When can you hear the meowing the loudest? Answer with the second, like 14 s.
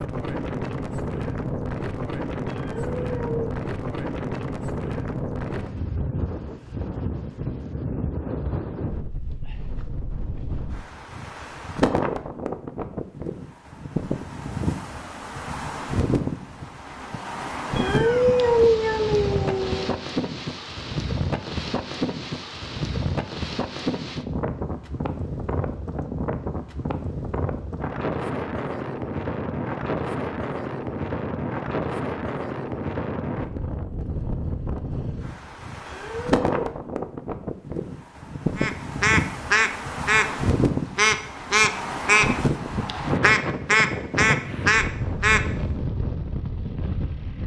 19 s.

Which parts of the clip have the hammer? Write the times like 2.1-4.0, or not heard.
not heard.